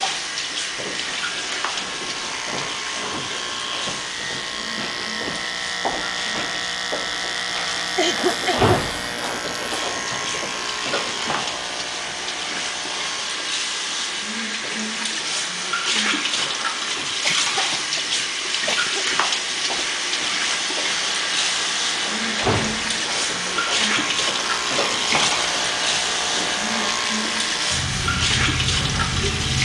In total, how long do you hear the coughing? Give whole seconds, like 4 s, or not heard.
3 s.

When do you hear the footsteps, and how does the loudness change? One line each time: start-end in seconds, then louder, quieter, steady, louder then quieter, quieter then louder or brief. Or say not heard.
not heard.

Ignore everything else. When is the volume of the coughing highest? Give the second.
8 s.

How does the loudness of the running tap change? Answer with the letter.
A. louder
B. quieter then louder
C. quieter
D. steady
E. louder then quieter
A.